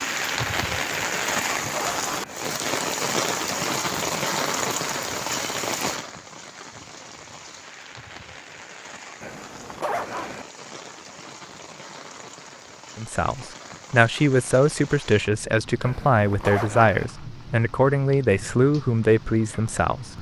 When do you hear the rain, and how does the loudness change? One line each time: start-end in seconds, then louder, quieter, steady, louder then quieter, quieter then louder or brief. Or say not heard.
0.0-20.1 quieter.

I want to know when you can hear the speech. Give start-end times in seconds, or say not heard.
12.9-20.1.